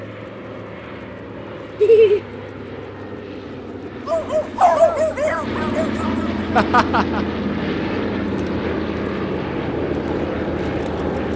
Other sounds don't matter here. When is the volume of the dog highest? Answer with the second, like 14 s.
5 s.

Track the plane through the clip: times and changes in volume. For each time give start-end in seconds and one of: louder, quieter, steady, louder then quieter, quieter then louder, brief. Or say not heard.
0.0-11.3 louder.